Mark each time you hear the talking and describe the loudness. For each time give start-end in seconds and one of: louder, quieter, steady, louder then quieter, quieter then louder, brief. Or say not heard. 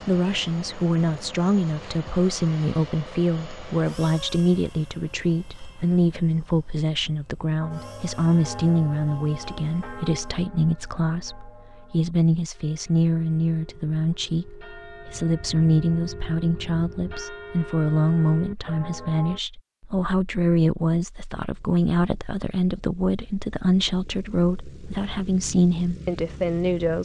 0.1-27.0 steady.